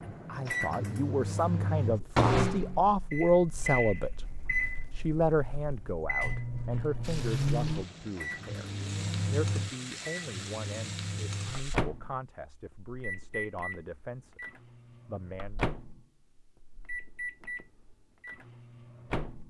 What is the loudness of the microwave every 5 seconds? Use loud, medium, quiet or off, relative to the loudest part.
loud, loud, medium, medium.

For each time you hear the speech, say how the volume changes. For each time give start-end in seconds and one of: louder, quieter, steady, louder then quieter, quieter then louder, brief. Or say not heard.
0.0-4.2 louder
4.9-15.7 quieter.